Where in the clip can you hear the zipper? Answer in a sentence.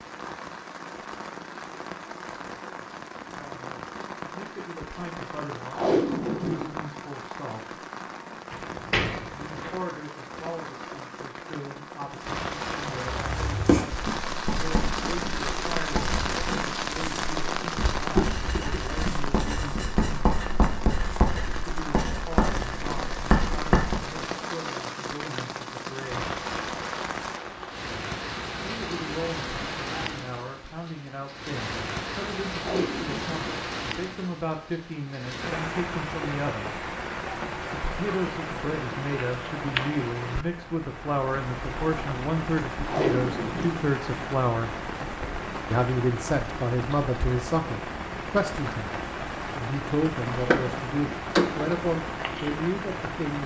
The zipper can't be heard in this clip.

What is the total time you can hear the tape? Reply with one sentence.
The tape can be heard for 3 seconds in total.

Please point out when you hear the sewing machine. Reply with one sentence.
You can't hear the sewing machine here.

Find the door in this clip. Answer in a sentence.
You can hear the door from 8.5 to 9.8 s and from 50.3 to 51.8 s.